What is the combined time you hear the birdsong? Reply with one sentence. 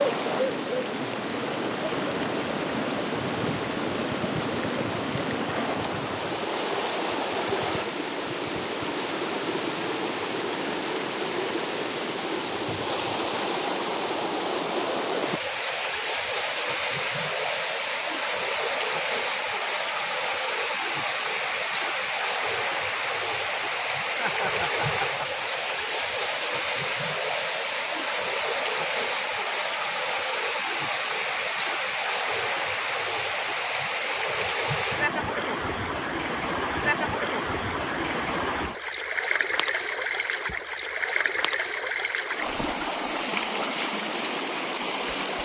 You can't hear the birdsong here.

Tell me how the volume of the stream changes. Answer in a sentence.
The volume of the stream stays about the same.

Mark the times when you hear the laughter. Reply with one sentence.
You can hear the laughter from 24.1 to 25.7 s.